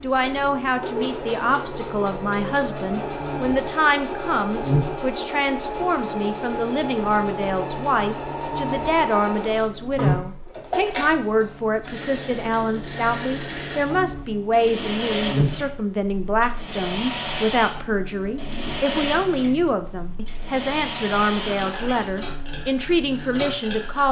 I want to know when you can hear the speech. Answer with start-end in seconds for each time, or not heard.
0.0-24.0.